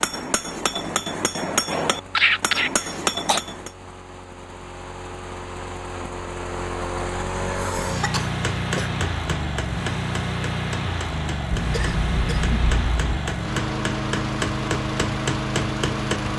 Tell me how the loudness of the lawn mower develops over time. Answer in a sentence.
The volume of the lawn mower goes up.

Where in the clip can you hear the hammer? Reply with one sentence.
The hammer can be heard from 0.0 to 3.7 s and from 8.2 to 16.3 s.